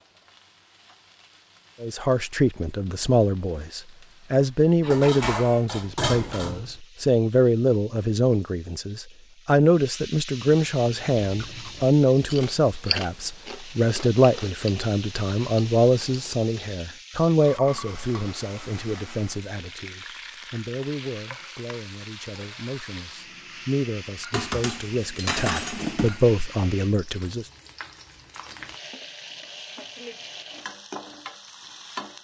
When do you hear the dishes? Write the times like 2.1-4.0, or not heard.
4.8-6.8, 24.3-26.2.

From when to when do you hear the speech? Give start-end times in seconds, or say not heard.
1.8-27.4.